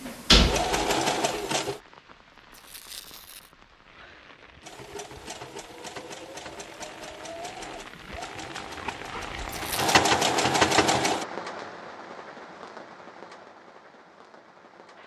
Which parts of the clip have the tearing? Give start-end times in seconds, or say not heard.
2.5-3.5, 9.5-9.9.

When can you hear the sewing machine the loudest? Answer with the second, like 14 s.
10 s.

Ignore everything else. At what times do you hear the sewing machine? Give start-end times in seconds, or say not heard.
0.0-1.8, 4.6-11.2.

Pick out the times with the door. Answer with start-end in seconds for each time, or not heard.
0.1-1.4.